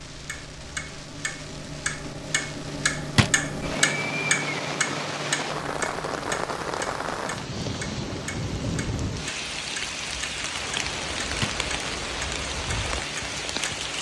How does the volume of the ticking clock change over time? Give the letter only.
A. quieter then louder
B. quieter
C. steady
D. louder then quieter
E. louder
D.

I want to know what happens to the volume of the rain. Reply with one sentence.
The loudness of the rain goes up.